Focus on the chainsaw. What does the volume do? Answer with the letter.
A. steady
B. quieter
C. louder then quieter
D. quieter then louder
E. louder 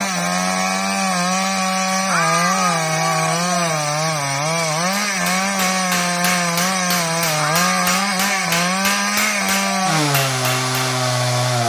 A.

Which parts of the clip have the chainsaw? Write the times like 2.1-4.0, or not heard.
0.0-11.6.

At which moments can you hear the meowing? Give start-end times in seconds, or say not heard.
2.0-3.8, 7.3-8.6.